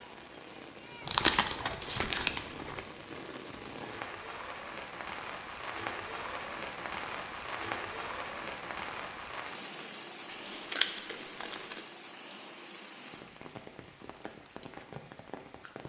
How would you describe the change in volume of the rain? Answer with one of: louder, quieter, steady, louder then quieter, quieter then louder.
louder then quieter.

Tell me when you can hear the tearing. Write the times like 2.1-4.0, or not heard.
1.1-2.9, 10.3-11.8.